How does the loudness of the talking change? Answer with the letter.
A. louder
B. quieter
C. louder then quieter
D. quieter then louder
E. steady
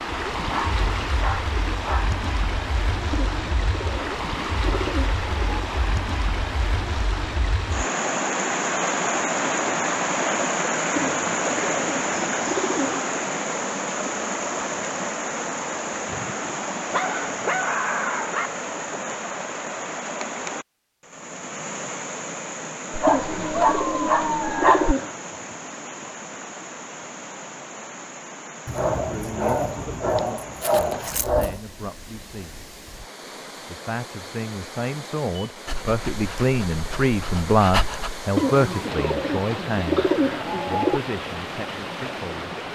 C.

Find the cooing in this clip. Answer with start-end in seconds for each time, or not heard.
3.1-5.7, 10.9-13.1, 23.1-25.2, 38.4-41.0.